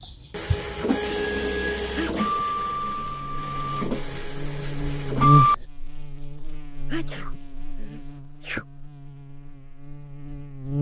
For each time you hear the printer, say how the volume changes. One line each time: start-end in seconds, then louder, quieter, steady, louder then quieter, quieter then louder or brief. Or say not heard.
0.0-5.5 quieter.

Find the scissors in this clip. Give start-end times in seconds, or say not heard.
not heard.